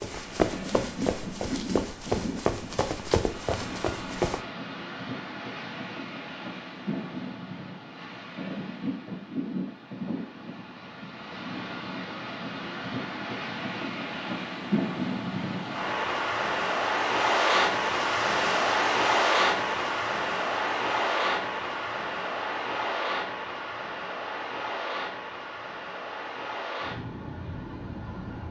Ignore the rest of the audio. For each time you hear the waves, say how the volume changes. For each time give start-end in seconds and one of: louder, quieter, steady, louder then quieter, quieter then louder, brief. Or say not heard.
0.0-28.4 louder then quieter.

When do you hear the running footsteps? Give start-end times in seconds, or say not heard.
0.0-4.4.